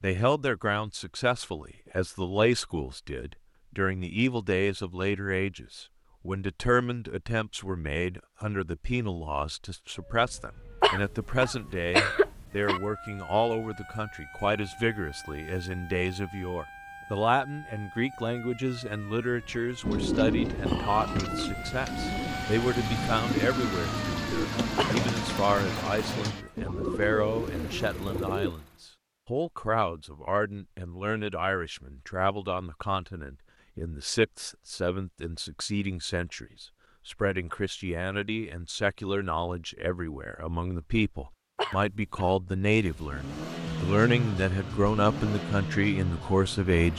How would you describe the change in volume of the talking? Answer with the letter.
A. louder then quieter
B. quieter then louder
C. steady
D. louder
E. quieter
C.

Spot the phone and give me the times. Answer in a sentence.
You can't hear the phone here.